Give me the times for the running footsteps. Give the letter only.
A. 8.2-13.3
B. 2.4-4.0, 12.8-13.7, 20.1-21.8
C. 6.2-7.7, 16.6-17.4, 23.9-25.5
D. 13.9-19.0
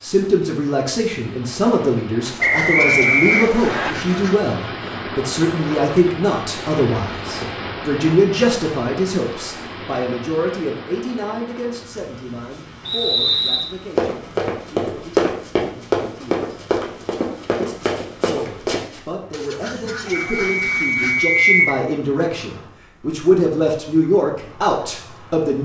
D.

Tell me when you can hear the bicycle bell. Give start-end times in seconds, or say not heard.
not heard.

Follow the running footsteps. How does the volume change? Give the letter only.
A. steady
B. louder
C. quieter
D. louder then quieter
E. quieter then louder
C.